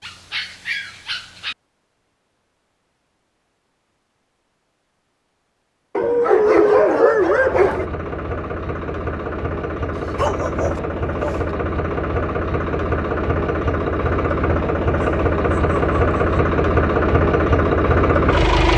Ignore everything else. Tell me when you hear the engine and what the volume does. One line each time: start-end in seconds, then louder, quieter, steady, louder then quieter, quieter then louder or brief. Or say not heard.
7.2-18.7 louder.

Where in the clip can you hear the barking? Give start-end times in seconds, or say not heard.
0.0-1.6, 6.0-7.9, 9.9-11.4, 14.9-16.4.